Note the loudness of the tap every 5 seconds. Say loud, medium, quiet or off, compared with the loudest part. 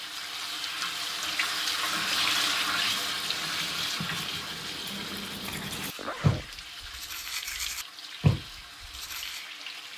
loud, medium.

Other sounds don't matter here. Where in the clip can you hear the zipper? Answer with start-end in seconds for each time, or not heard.
6.0-6.5.